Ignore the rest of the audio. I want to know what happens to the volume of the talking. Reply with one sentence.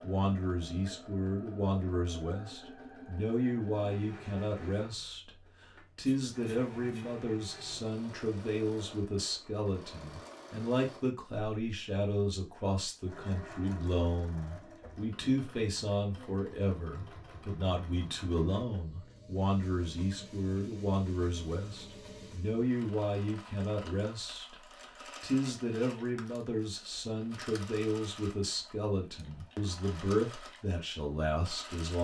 The loudness of the talking stays about the same.